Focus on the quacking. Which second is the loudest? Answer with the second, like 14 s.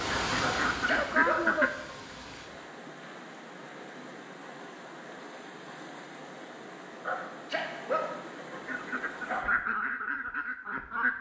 1 s.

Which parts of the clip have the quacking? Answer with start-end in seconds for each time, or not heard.
0.0-1.7, 8.7-11.1.